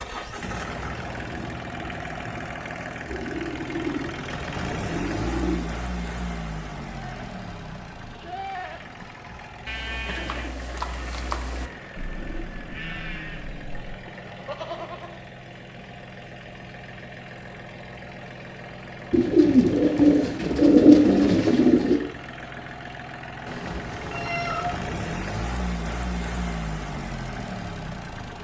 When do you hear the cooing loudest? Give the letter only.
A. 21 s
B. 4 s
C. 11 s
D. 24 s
A.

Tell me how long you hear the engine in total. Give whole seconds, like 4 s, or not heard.
28 s.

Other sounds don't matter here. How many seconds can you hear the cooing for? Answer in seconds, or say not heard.
8 s.